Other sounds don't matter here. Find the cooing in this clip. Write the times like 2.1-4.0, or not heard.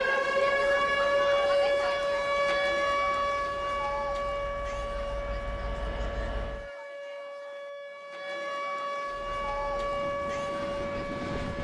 not heard.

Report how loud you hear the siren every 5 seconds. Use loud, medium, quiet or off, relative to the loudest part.
loud, medium, medium.